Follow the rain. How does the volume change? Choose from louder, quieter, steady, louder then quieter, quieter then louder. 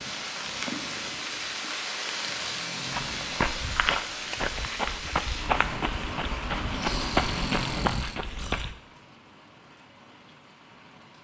quieter.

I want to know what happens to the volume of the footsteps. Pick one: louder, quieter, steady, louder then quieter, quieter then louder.
steady.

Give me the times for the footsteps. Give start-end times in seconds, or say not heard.
2.9-8.8.